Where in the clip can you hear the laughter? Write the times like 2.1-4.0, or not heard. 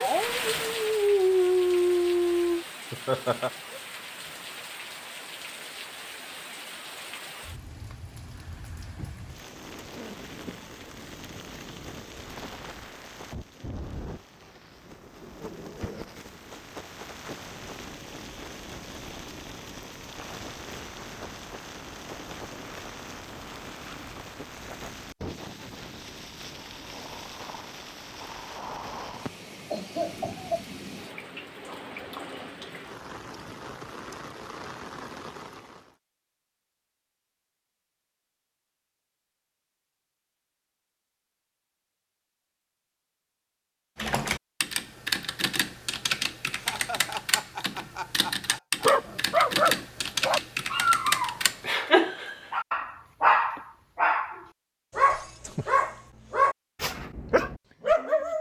2.9-3.5, 29.2-30.6, 46.5-48.9.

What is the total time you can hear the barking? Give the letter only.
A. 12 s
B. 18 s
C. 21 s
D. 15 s
A.